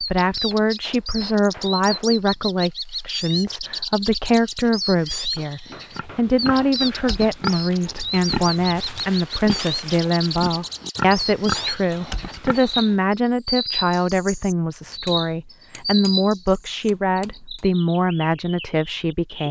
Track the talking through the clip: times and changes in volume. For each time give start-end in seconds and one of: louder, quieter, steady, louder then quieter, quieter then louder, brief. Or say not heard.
0.0-19.4 steady.